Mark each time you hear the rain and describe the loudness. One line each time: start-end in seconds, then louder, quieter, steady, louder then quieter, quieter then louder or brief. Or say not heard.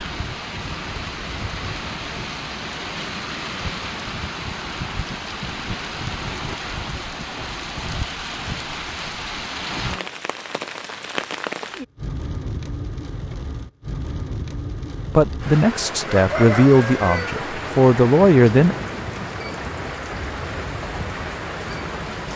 0.0-22.3 steady.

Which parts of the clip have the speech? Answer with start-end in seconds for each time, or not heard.
15.2-18.8.